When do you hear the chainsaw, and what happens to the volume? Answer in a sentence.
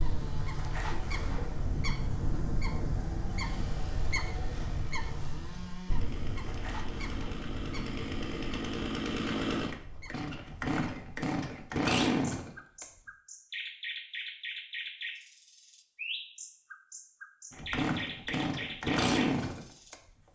You can hear the chainsaw from 0.0 to 12.8 s, getting louder; and briefly from 17.5 to 20.3 s.